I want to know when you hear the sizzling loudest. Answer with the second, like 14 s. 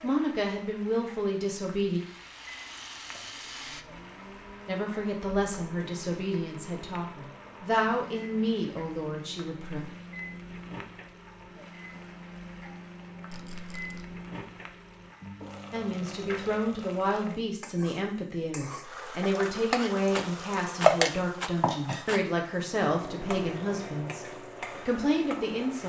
21 s.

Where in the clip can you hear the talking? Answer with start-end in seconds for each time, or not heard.
0.0-2.0, 4.7-9.8, 15.7-25.8.